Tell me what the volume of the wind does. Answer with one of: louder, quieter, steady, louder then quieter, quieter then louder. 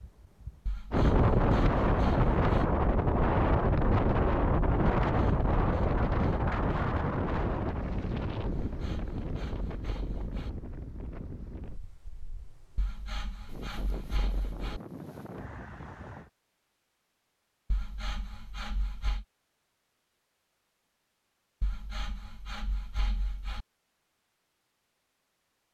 quieter.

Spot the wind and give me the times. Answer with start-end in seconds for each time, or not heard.
0.0-16.3.